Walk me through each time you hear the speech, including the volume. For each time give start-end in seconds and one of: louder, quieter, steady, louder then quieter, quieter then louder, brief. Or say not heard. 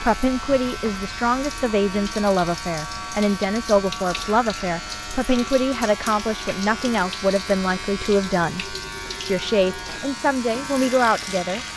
0.0-11.7 steady.